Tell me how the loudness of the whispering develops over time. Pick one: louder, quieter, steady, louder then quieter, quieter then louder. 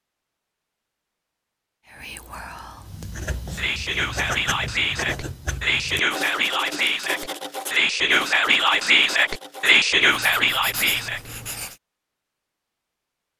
louder.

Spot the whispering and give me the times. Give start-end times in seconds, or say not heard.
1.9-11.3.